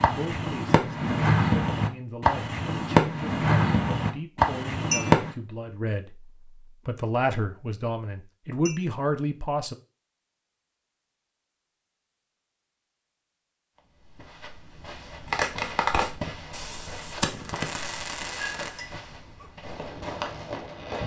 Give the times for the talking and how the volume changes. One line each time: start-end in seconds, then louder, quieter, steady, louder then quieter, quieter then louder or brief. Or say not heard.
0.0-9.8 louder.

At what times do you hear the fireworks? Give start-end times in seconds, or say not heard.
0.0-5.3, 15.2-21.0.